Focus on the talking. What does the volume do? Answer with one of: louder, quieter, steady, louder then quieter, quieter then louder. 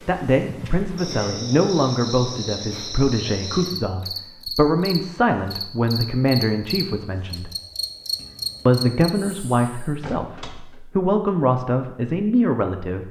steady.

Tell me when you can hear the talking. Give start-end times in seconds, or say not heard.
0.1-7.5, 8.7-13.0.